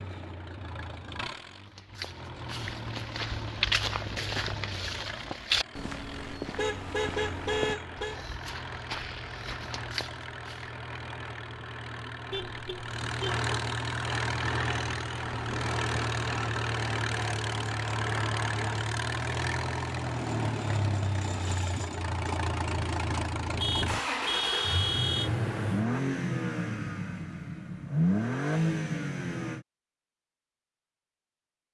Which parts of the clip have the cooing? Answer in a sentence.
You can't hear the cooing here.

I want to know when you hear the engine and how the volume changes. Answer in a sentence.
You can hear the engine from 0.0 to 29.6 s, getting louder.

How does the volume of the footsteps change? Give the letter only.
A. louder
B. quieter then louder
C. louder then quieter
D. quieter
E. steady
D.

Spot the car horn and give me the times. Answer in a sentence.
You can hear the car horn from 6.5 to 8.2 s, from 12.3 to 13.4 s and from 23.6 to 25.3 s.